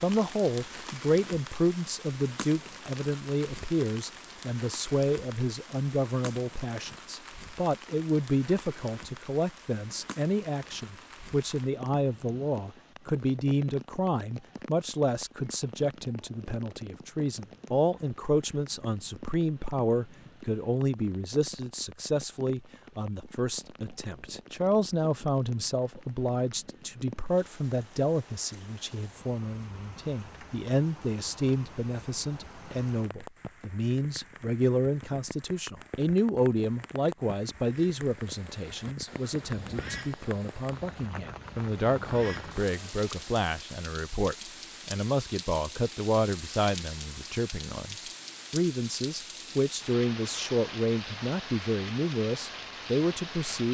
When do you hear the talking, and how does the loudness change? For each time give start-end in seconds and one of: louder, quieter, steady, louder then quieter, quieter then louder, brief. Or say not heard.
0.0-53.6 steady.